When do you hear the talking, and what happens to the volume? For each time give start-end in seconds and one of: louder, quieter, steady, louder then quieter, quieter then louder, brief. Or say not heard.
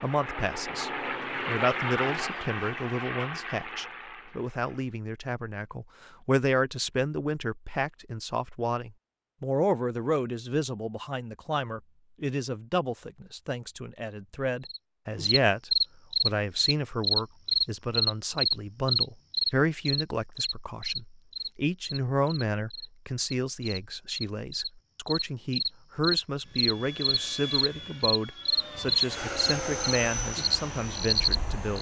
0.0-31.7 steady.